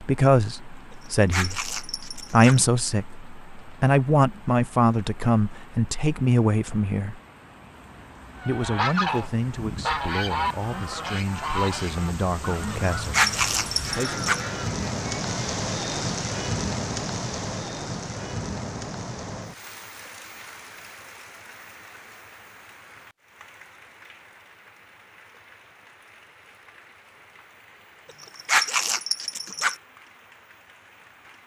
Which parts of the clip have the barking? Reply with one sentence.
You can hear the barking from 1.2 to 2.6 s, from 13.0 to 14.4 s and from 28.2 to 29.8 s.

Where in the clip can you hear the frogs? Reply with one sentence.
You can't hear the frogs here.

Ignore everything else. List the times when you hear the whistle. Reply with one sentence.
The whistle can't be heard in this clip.